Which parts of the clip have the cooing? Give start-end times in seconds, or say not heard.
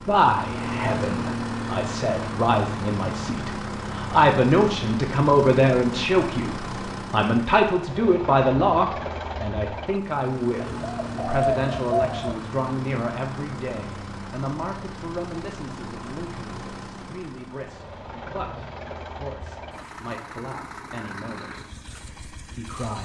10.7-12.3.